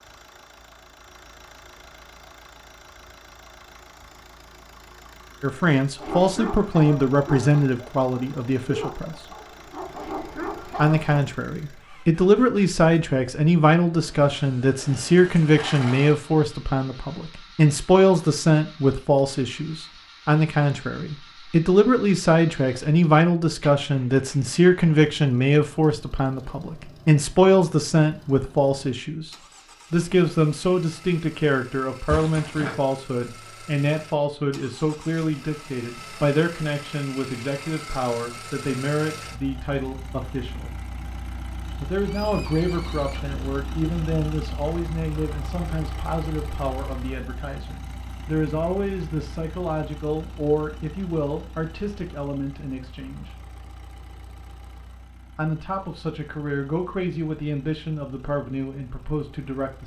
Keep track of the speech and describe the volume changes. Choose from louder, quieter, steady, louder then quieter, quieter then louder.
quieter.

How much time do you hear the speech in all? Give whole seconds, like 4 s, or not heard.
50 s.